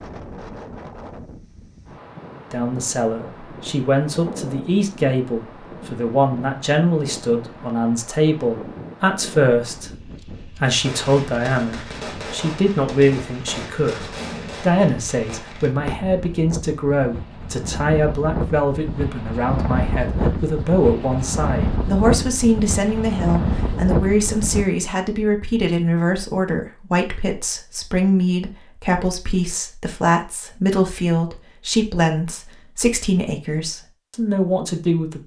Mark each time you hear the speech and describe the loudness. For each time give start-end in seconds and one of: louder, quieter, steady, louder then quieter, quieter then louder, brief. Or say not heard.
2.5-35.2 steady.